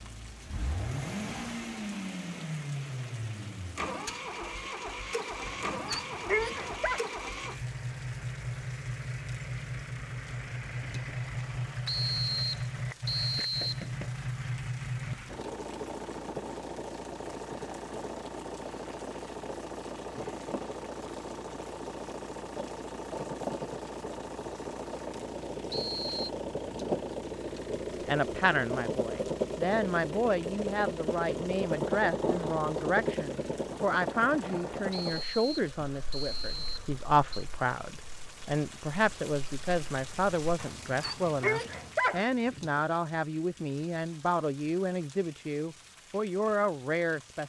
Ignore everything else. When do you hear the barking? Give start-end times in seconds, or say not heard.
5.5-7.0, 40.5-42.2.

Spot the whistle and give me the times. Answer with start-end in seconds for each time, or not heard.
11.8-13.8, 25.7-26.3, 34.9-37.5.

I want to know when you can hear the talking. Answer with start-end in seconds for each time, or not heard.
28.1-47.4.